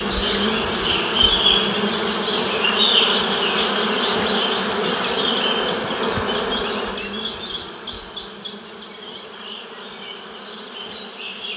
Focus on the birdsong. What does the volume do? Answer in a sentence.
The loudness of the birdsong goes down.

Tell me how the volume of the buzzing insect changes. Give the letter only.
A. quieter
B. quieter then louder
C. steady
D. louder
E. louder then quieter
A.